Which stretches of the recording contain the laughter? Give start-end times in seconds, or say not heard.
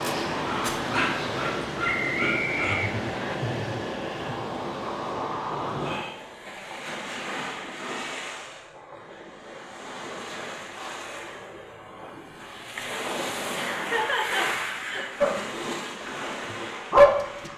2.5-4.4, 13.7-15.1.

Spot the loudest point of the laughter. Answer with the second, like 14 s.
14 s.